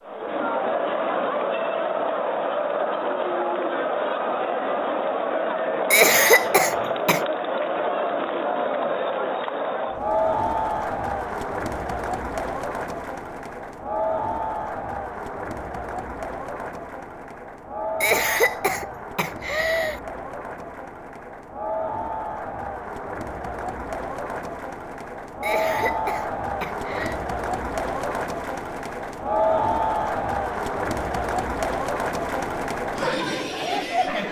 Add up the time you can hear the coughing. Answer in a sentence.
You can hear the coughing for 5 seconds altogether.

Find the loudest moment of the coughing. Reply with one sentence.
The loudest moment of the coughing is at 6 seconds.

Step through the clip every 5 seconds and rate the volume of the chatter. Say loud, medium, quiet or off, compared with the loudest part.
loud, loud, loud, medium, medium, loud, loud.